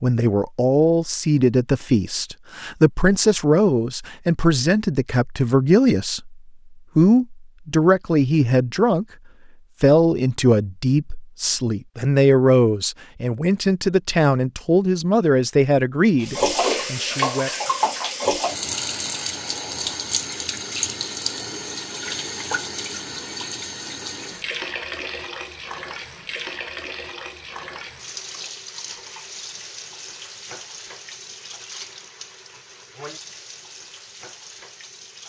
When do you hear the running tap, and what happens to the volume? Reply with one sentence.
The running tap can be heard from 16.2 to 35.2 s, getting quieter.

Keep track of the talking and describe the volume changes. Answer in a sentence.
The volume of the talking stays about the same.